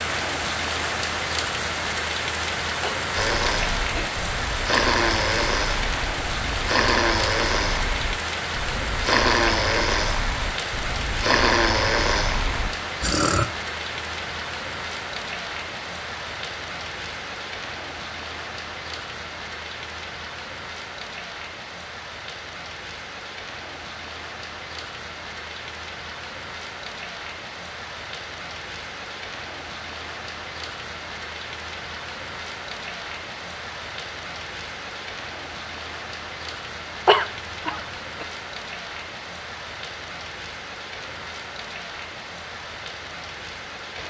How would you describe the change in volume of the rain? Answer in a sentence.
The volume of the rain goes down.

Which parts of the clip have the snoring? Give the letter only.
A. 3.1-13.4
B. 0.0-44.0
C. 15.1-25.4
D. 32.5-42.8
A.